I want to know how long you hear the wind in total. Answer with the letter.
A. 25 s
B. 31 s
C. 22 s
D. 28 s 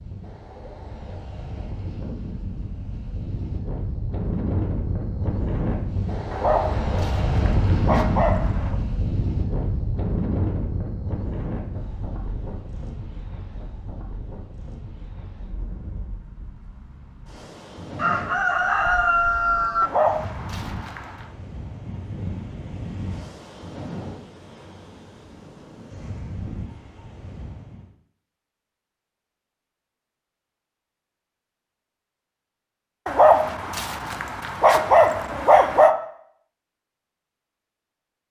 D.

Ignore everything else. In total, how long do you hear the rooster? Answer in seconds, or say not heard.
2 s.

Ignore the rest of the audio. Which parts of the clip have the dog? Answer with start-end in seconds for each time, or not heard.
6.3-8.8, 19.8-21.2, 33.0-36.0.